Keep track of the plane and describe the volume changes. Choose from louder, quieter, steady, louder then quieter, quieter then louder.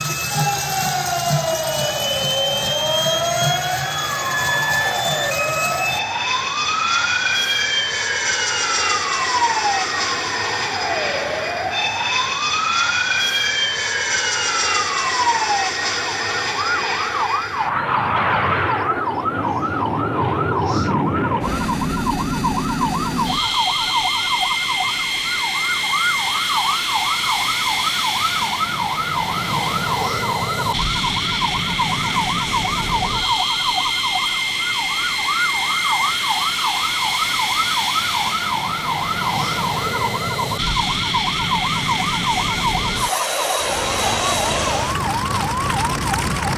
steady.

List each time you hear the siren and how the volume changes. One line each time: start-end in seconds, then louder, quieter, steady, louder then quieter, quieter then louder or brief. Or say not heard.
0.2-46.5 steady.